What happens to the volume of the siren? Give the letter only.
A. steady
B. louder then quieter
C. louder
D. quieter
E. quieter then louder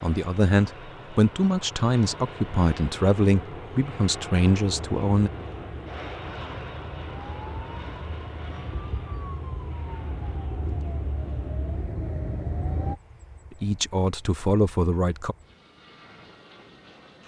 C.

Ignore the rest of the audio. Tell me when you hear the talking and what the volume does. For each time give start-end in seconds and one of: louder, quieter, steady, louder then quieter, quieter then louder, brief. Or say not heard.
0.0-5.3 steady
13.5-15.3 brief.